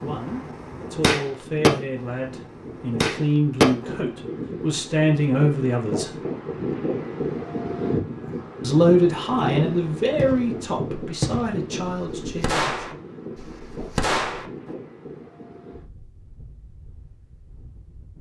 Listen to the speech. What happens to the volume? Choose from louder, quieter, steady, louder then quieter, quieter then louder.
louder then quieter.